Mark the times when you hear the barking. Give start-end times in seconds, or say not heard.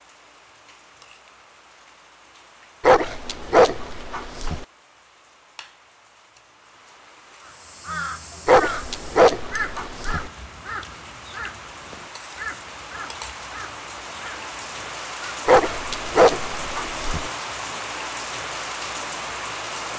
2.8-4.7, 8.4-10.3, 15.4-17.3.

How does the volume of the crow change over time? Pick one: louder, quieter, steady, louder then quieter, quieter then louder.
quieter.